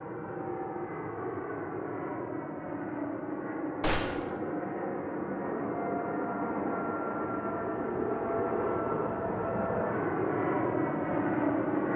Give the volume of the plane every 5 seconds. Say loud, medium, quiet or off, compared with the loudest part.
medium, loud, loud.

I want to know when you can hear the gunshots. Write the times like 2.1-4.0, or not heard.
3.8-4.3.